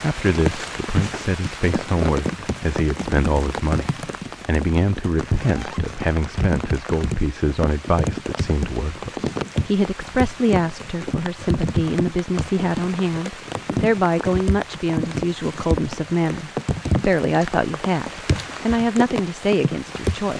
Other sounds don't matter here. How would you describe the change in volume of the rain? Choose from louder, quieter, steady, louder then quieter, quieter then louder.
steady.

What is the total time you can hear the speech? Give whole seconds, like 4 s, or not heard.
20 s.